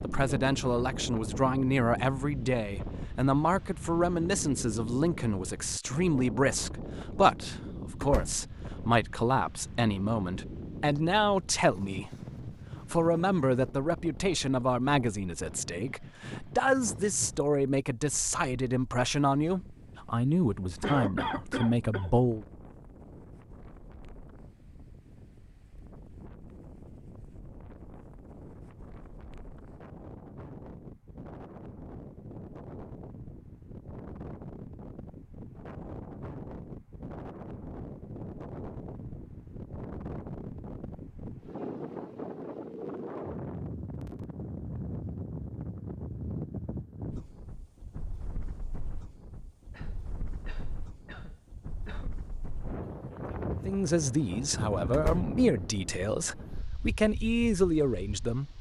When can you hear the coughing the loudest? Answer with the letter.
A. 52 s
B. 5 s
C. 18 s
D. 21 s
D.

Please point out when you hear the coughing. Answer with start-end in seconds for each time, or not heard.
16.8-17.4, 20.8-22.1, 49.7-52.1.